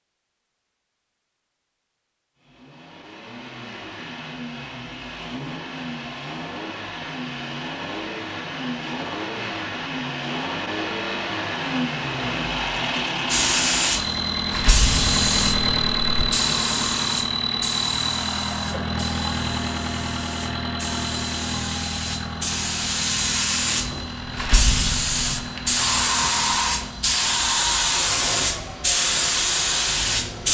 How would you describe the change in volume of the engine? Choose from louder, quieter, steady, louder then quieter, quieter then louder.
louder then quieter.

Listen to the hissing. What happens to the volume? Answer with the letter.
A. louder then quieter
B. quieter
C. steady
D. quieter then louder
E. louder
D.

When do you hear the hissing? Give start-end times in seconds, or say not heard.
13.2-30.4.